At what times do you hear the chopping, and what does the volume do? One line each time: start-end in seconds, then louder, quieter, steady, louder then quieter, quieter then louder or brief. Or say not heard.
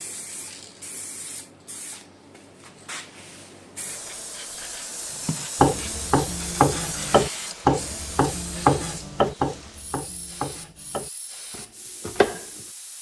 5.2-12.4 quieter.